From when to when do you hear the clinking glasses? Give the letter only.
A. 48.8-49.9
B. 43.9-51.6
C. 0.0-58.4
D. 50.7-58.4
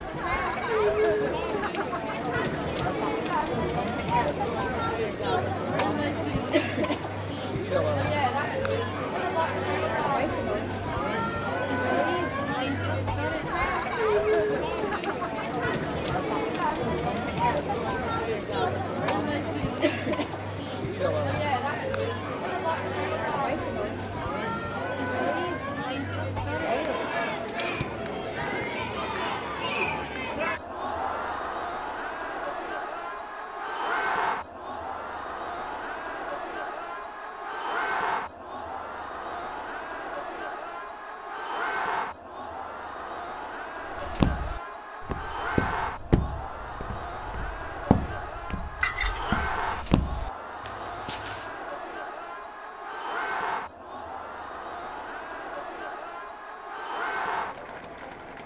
A.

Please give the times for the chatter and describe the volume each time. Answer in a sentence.
The chatter can be heard from 0.0 to 58.4 s, getting quieter.